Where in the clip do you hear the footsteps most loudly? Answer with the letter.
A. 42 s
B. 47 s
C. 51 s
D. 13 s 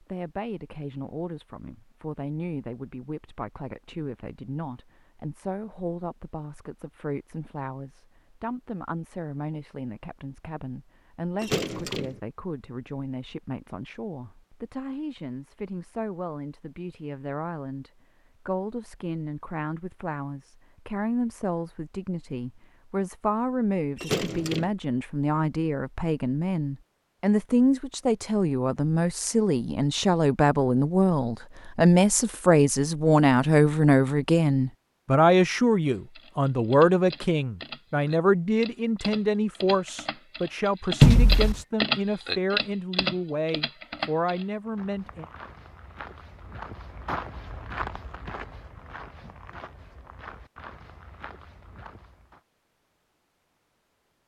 B.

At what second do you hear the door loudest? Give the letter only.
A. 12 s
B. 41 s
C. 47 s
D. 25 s
B.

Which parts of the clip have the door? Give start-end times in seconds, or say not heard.
11.4-12.2, 23.9-24.7, 41.0-41.5.